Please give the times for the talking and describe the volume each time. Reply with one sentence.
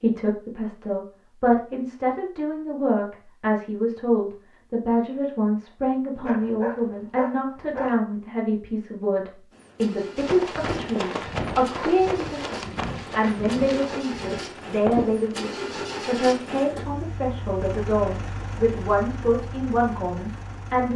The talking can be heard from 0.0 to 20.9 s, at a steady volume.